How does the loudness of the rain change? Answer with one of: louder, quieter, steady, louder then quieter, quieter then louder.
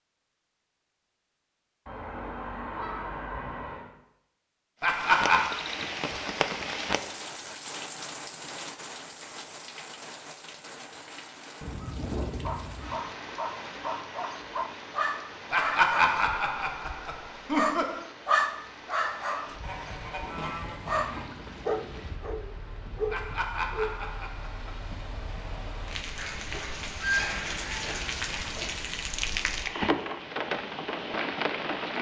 quieter then louder.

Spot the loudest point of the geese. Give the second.
27 s.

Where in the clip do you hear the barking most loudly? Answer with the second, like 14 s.
18 s.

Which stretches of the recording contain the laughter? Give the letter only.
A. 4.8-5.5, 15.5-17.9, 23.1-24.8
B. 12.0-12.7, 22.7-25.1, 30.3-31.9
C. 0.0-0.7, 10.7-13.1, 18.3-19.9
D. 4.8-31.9
A.